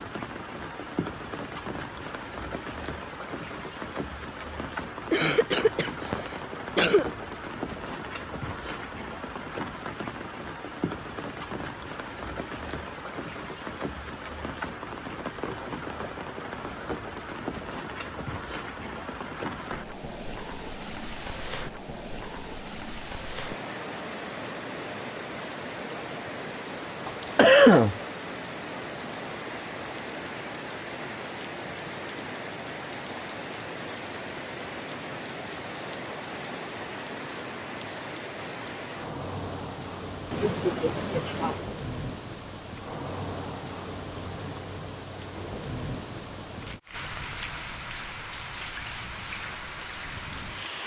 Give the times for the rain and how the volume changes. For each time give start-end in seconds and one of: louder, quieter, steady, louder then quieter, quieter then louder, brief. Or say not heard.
0.0-50.8 steady.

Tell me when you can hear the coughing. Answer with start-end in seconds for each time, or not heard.
5.1-7.0, 27.1-27.9, 40.3-41.7.